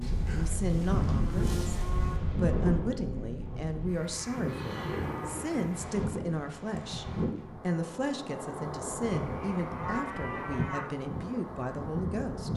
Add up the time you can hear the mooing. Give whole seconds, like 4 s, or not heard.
5 s.